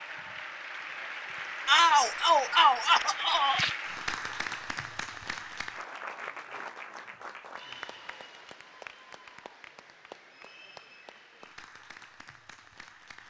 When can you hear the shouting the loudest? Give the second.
2 s.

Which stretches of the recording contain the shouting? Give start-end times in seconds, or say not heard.
1.6-3.6.